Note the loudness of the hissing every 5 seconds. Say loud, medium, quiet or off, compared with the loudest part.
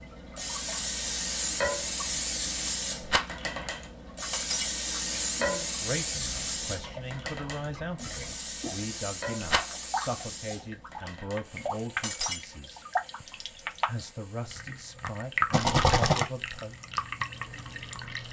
loud, loud, quiet, quiet.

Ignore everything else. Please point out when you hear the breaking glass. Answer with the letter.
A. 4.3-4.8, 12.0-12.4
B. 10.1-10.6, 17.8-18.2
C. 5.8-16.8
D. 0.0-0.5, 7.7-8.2
A.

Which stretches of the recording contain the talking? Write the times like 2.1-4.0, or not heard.
5.8-16.8.